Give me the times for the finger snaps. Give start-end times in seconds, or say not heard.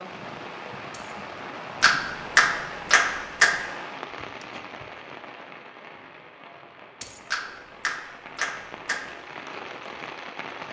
1.8-3.5, 7.3-9.0.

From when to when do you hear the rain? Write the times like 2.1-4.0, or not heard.
0.0-10.6.